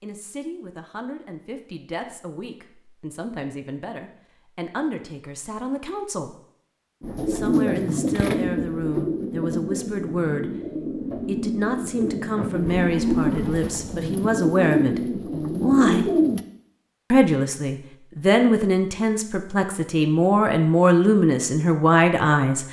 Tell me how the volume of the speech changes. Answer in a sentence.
The loudness of the speech goes up.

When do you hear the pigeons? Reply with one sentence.
You can hear the pigeons from 7.0 to 16.4 s.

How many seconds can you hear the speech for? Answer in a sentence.
The speech can be heard for 20 seconds in total.